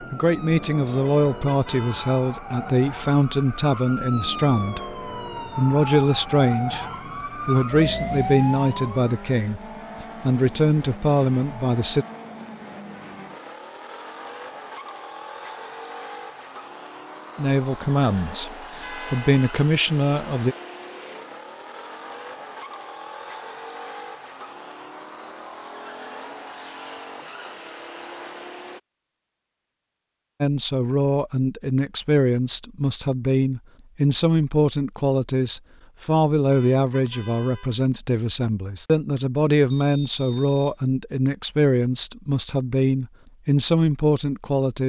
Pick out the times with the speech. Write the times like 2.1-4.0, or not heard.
0.0-6.8, 7.5-12.1, 17.4-20.6, 30.4-44.8.